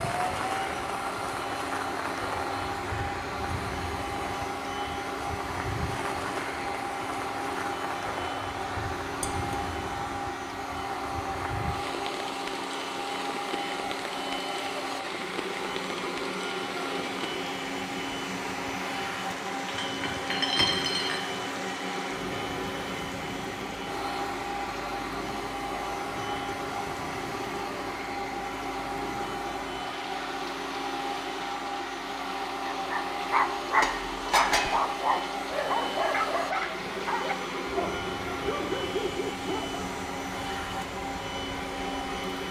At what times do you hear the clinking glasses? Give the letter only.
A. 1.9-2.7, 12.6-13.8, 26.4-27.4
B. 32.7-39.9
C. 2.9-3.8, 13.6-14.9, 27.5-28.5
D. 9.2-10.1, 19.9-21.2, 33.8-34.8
D.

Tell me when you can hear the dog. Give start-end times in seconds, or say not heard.
32.7-39.9.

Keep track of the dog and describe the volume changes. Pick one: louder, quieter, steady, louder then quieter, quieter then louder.
quieter.